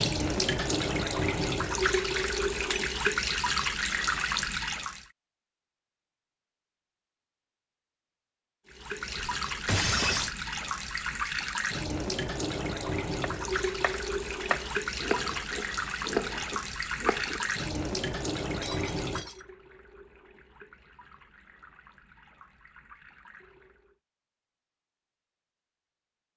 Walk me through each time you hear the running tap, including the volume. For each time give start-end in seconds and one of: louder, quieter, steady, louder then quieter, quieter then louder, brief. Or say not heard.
0.0-5.0 steady
8.7-24.0 quieter.